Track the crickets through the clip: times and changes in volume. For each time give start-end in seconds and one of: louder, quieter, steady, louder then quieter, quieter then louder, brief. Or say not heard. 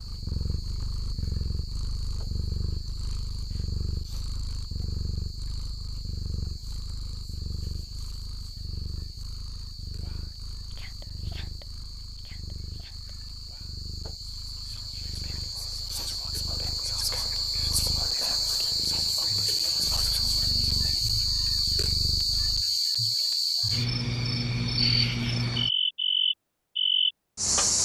0.0-27.8 louder.